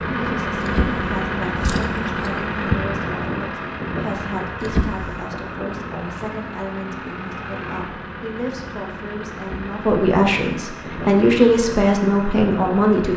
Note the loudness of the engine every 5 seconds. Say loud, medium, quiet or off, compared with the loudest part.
loud, medium, medium.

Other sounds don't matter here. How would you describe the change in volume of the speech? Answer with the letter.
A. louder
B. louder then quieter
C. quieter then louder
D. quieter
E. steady
A.